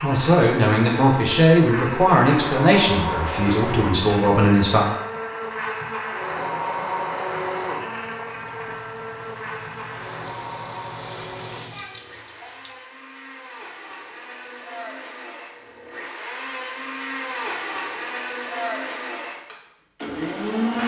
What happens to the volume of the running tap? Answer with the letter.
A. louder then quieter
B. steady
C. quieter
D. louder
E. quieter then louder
D.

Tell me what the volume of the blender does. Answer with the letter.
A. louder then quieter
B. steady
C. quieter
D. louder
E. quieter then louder
E.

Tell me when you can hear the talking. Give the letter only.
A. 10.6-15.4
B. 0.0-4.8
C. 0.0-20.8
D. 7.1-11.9
B.